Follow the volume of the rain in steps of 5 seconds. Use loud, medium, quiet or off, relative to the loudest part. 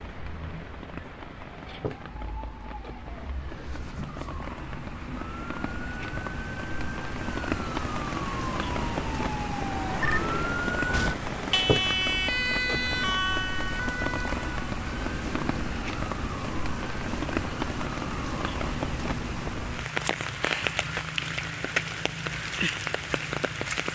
medium, loud, loud, loud, loud.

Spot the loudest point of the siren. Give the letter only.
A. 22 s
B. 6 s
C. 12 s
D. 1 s
C.